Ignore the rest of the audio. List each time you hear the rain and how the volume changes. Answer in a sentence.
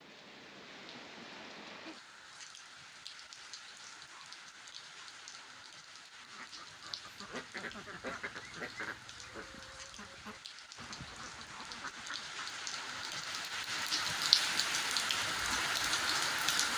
You can hear the rain from 0.0 to 16.7 s, getting louder.